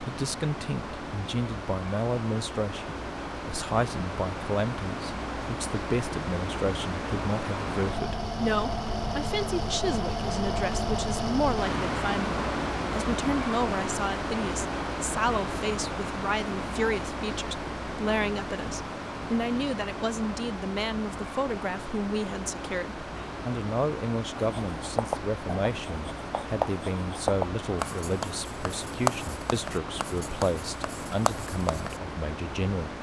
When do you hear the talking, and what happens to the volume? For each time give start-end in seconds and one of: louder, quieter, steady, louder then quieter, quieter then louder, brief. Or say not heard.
0.0-32.9 steady.